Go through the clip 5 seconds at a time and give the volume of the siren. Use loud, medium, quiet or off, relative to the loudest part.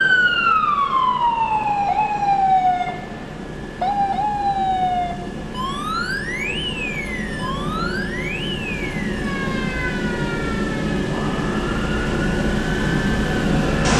loud, medium, quiet.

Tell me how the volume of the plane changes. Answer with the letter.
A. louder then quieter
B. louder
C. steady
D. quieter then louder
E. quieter
B.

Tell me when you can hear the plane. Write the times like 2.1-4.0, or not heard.
0.0-13.9.